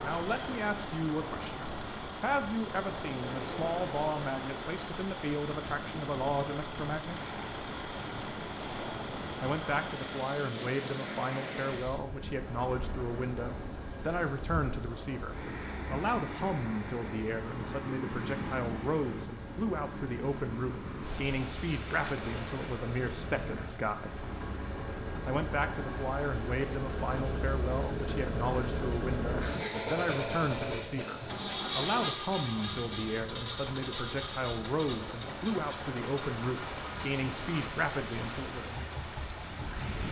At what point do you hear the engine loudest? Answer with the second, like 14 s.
30 s.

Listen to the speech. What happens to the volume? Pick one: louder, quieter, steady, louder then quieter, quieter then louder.
steady.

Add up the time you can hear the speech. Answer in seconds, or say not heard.
36 s.